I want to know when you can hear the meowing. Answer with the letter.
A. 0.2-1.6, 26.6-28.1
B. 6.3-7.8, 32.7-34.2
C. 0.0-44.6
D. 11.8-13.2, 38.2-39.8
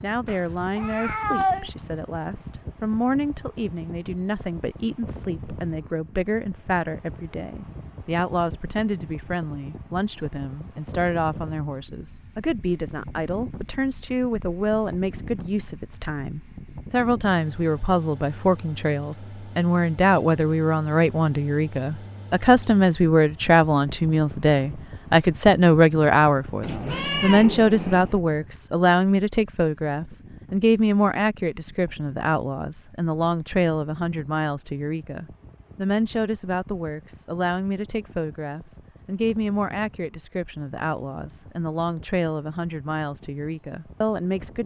A.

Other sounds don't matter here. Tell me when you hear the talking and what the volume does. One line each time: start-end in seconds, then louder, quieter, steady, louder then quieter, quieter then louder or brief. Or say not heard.
0.0-44.6 louder then quieter.